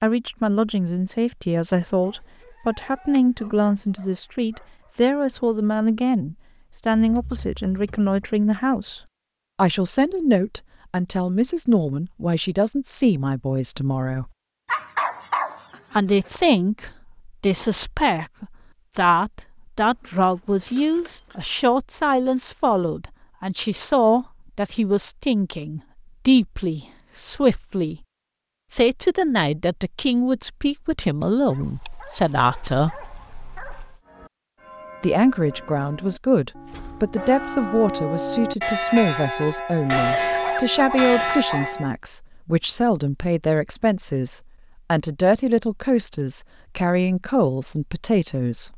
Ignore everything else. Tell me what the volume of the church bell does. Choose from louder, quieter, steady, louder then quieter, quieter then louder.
louder.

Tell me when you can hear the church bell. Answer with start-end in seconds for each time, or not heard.
34.0-42.0.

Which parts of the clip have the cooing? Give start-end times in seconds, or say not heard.
not heard.